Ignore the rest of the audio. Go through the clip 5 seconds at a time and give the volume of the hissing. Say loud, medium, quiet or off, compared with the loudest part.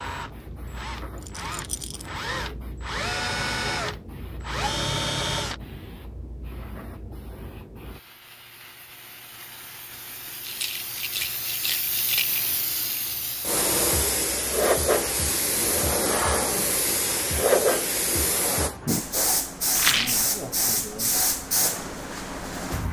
quiet, quiet, loud, loud, loud.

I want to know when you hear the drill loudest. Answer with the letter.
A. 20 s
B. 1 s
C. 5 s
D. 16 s
C.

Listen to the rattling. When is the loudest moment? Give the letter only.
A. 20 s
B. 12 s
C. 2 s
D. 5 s
A.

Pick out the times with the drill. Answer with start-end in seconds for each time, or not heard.
0.0-5.6.